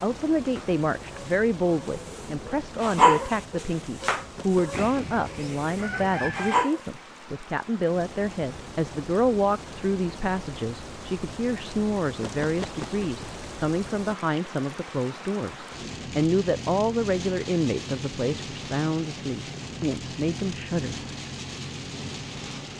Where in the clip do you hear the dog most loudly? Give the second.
3 s.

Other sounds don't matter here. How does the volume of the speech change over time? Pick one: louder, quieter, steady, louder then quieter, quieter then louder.
steady.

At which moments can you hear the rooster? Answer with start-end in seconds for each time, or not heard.
4.7-6.7.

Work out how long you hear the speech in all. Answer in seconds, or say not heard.
21 s.